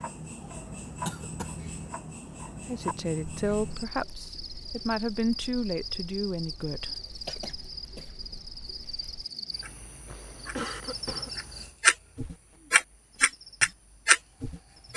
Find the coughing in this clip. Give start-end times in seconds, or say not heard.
1.1-1.6, 7.2-8.3, 10.1-11.3.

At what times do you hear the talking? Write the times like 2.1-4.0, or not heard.
2.6-7.0.